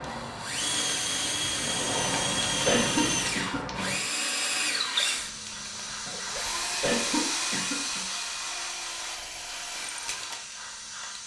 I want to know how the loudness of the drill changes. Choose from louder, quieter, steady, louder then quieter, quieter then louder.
quieter.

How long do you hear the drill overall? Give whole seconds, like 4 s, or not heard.
11 s.